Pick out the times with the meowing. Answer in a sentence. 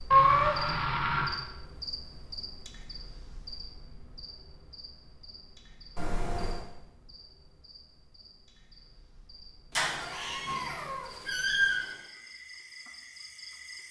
The meowing can be heard from 0.1 to 1.4 s, from 6.0 to 6.7 s and from 9.8 to 11.8 s.